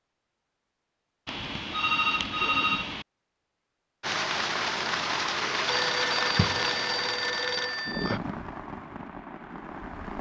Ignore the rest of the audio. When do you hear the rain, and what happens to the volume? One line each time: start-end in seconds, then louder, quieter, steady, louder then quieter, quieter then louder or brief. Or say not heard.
4.0-10.1 quieter.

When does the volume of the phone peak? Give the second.
3 s.